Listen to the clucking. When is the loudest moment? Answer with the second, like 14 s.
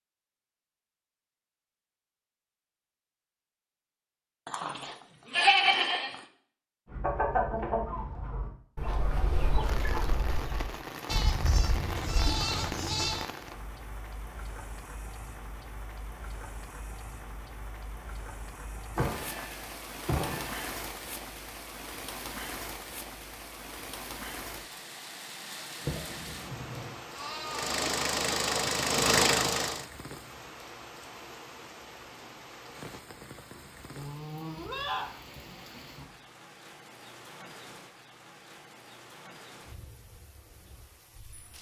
7 s.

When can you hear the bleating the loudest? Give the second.
6 s.